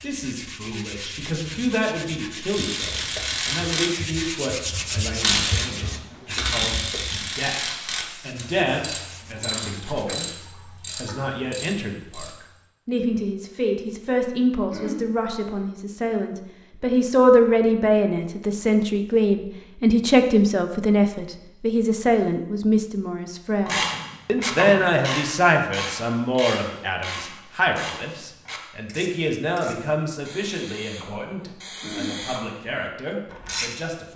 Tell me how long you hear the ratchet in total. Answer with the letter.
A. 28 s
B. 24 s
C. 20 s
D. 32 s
C.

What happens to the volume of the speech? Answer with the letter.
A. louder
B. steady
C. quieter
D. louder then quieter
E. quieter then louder
D.